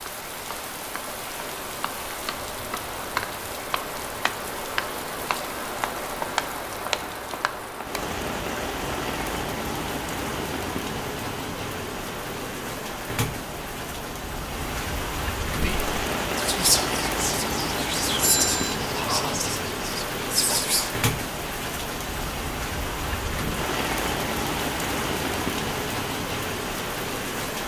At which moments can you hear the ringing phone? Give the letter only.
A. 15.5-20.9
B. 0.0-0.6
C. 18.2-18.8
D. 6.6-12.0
C.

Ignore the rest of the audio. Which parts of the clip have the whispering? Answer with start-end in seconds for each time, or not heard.
15.5-20.9.